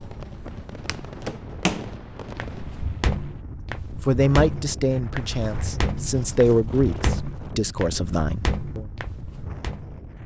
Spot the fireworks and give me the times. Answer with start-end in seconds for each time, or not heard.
0.0-3.5.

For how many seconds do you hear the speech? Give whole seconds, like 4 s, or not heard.
5 s.